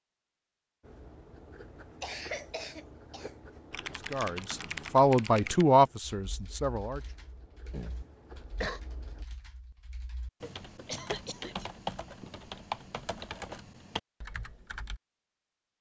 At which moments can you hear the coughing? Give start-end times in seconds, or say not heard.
2.0-3.3, 7.7-8.8, 10.8-11.7.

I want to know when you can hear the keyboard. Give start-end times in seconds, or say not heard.
3.7-15.0.